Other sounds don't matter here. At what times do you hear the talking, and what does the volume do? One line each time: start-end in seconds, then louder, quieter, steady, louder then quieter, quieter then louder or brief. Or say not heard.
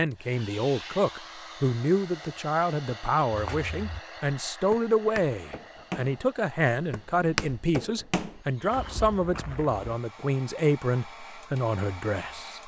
0.0-12.6 steady.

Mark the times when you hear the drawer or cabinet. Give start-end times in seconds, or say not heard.
not heard.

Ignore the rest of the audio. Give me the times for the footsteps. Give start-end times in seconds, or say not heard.
3.3-9.9.